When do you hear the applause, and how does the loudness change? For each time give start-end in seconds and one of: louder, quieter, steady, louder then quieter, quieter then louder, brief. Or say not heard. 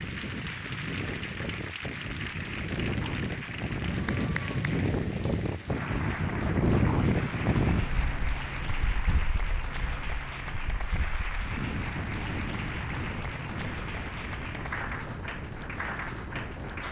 0.0-16.8 steady.